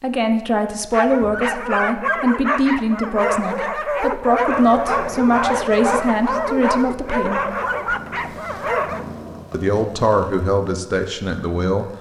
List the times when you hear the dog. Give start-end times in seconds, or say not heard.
0.9-9.1.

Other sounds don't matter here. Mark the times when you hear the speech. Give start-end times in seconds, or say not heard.
0.0-7.5, 9.5-11.8.